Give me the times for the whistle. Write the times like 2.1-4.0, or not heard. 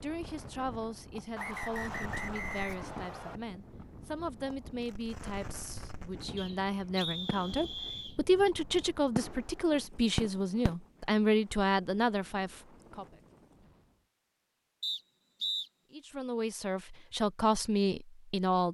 1.4-3.4, 6.3-8.2, 14.8-15.7.